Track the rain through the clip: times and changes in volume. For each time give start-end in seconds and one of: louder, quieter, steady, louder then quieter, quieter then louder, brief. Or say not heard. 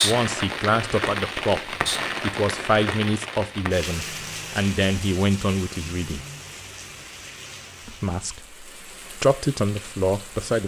0.0-10.6 quieter.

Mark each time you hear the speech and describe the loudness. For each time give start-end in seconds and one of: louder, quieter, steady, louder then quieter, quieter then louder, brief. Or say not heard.
0.0-6.2 steady
7.8-10.6 brief.